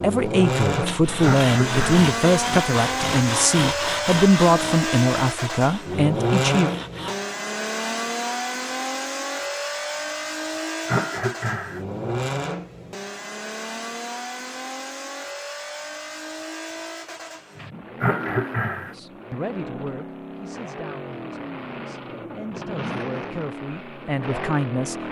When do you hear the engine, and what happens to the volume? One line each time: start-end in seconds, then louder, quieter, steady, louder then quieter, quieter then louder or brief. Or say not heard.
0.0-25.0 quieter.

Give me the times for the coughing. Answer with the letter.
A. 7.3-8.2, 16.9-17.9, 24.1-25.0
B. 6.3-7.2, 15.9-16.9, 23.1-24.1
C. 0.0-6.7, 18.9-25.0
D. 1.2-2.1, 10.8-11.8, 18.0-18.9
D.